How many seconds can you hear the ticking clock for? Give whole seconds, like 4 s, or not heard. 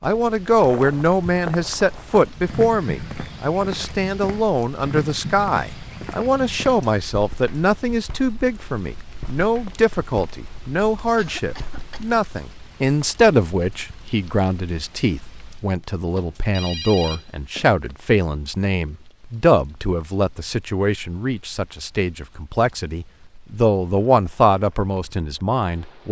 not heard.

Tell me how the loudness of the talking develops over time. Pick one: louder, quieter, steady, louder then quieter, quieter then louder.
steady.